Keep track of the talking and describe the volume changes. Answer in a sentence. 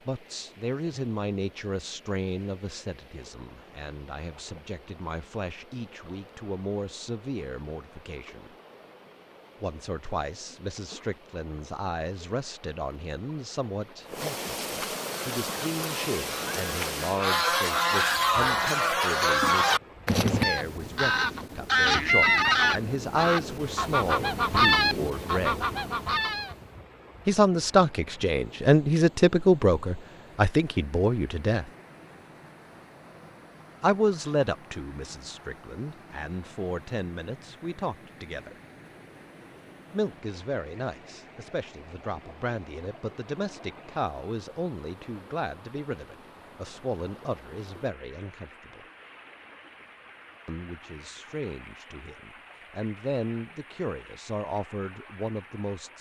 The loudness of the talking goes up, then down.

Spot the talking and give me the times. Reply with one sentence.
The talking can be heard from 0.1 to 8.5 s, from 9.6 to 25.6 s, from 27.2 to 31.7 s, from 33.8 to 38.5 s, from 39.9 to 48.8 s and from 50.5 to 55.9 s.